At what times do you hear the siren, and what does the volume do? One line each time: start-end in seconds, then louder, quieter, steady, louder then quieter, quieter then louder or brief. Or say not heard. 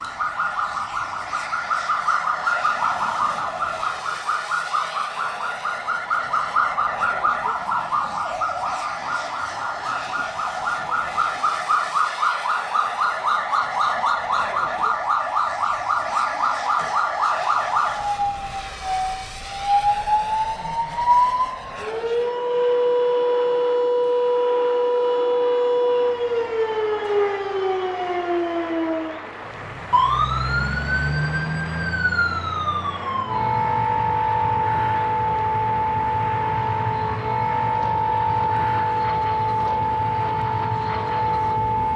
0.0-41.9 steady.